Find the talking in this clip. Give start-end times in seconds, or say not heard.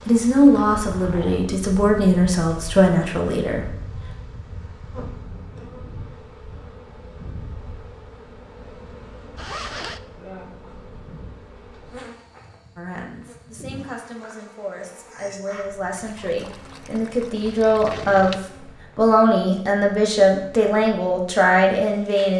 0.1-4.0, 12.8-18.4, 18.9-22.3.